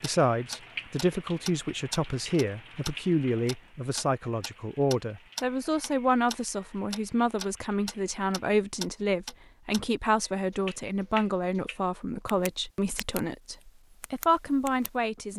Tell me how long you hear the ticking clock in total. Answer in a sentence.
The ticking clock can be heard for 14 seconds in total.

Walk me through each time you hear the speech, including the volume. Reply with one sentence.
You can hear the speech from 0.0 to 15.3 s, at a steady volume.